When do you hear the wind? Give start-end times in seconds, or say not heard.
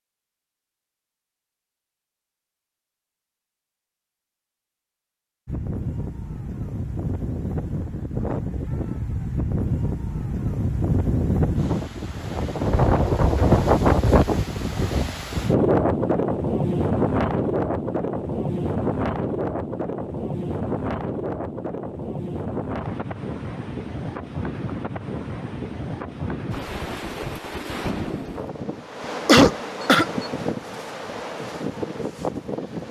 5.5-32.8.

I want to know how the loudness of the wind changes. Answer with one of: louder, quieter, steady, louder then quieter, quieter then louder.
louder then quieter.